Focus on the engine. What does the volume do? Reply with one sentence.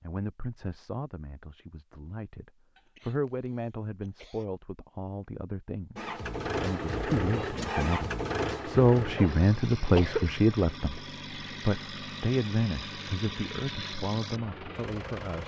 The volume of the engine goes down.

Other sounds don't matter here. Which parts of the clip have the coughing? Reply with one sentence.
The coughing can be heard from 2.8 to 4.5 s and from 9.2 to 10.3 s.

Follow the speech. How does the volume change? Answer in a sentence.
The loudness of the speech goes up, then down.